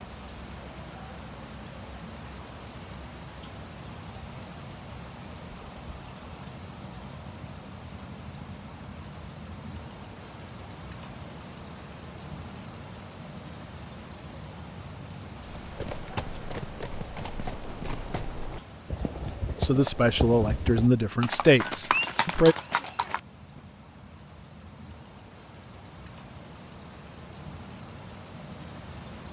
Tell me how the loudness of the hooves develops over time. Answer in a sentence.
The loudness of the hooves goes up.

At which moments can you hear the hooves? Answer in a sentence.
You can hear the hooves from 15.6 to 23.6 s.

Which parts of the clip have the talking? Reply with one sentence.
The talking can be heard from 19.6 to 22.6 s.